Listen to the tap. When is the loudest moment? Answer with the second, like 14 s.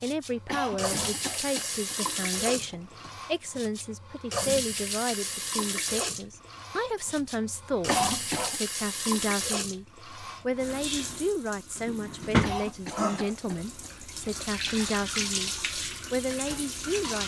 13 s.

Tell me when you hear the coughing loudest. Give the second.
8 s.